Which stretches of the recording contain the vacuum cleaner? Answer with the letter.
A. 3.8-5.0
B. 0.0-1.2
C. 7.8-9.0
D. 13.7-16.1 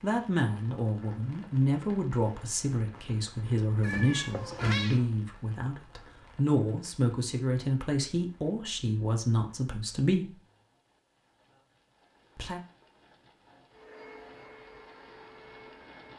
D.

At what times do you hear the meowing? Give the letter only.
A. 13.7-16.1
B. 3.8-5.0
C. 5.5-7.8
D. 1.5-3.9
B.